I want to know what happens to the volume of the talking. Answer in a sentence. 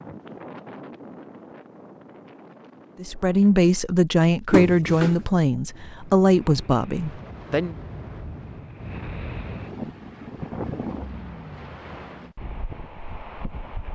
The volume of the talking goes down.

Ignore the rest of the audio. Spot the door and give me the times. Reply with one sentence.
The door can be heard from 4.5 to 5.2 s.